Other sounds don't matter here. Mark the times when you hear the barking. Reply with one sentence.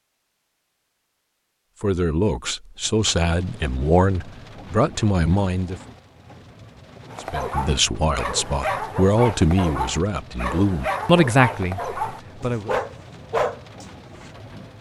You can hear the barking from 7.1 to 14.3 s.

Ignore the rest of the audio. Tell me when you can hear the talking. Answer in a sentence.
You can hear the talking from 1.8 to 5.8 s and from 7.2 to 12.8 s.